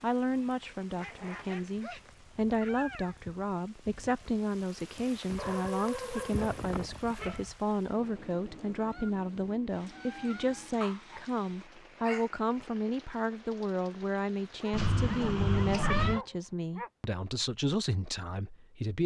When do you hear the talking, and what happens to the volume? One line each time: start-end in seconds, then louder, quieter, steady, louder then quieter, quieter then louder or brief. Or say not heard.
0.0-19.0 steady.